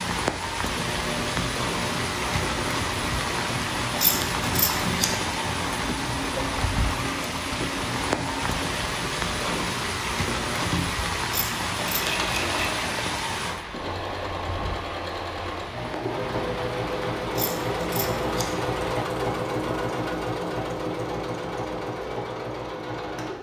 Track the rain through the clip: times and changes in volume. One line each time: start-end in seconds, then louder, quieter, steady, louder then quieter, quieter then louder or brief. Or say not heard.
0.0-19.1 quieter.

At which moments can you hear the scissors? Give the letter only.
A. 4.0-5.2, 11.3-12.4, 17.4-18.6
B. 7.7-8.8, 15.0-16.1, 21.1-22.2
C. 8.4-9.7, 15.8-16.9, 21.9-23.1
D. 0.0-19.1
A.